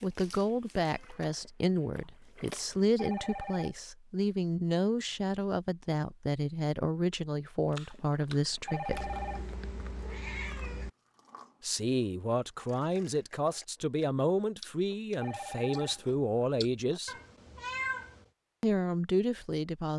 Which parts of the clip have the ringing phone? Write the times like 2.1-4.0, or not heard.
3.0-3.8, 8.7-9.5, 15.2-16.1.